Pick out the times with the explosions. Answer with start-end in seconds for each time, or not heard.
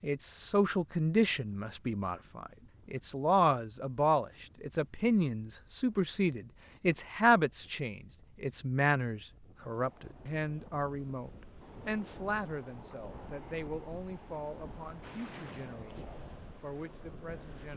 15.0-15.8.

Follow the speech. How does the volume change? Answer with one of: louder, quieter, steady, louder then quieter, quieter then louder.
quieter.